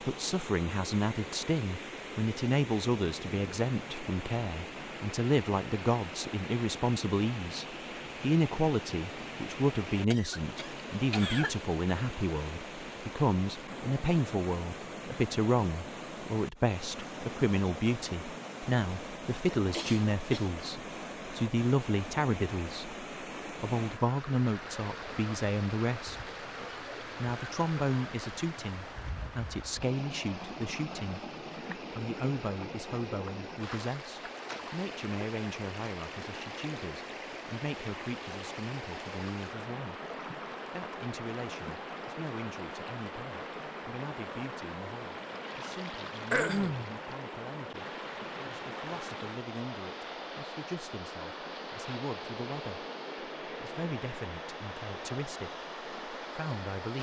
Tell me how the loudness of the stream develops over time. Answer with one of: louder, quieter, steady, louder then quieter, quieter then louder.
steady.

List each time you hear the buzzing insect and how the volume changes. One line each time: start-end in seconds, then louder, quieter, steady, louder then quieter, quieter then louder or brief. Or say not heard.
not heard.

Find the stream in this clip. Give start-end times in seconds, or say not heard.
0.0-56.9.